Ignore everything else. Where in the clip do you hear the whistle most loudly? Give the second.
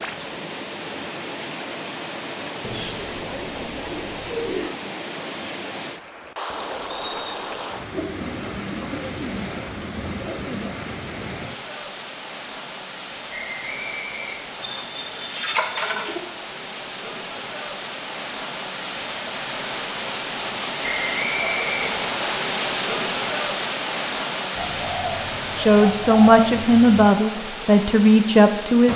21 s.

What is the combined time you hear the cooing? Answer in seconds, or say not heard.
9 s.